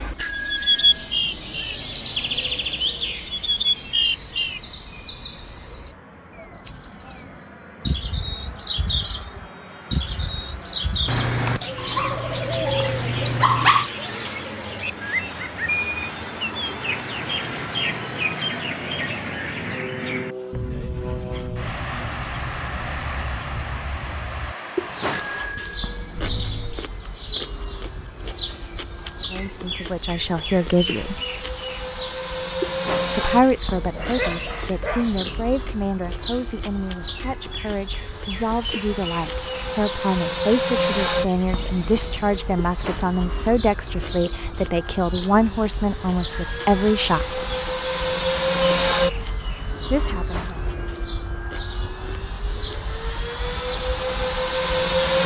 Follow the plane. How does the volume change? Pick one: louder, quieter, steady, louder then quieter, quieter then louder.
louder.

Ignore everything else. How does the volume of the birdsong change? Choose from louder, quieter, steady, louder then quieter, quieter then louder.
quieter.